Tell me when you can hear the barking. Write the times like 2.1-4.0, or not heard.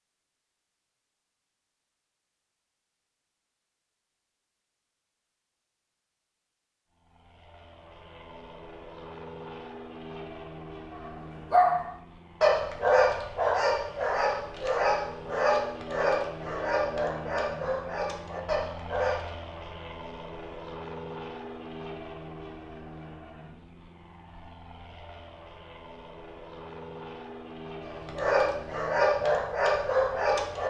10.9-19.3, 27.9-30.6.